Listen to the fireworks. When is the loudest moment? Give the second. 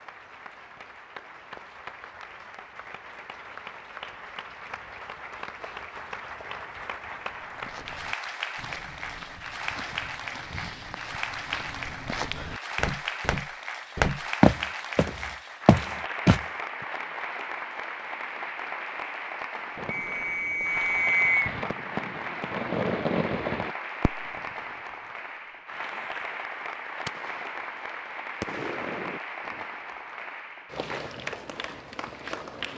23 s.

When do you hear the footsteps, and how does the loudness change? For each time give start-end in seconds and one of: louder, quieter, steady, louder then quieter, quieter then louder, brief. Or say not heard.
7.4-16.4 louder.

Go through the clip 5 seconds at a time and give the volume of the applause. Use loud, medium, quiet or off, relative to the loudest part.
medium, loud, loud, loud, loud, loud, loud.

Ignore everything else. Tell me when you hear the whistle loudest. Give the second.
21 s.